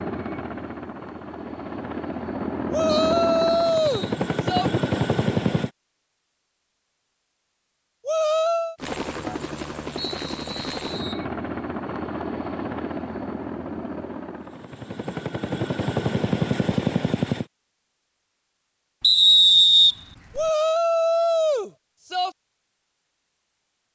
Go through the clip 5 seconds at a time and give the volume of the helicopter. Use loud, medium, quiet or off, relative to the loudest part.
loud, loud, medium, loud, off.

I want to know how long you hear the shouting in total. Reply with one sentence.
You can hear the shouting for 5 seconds altogether.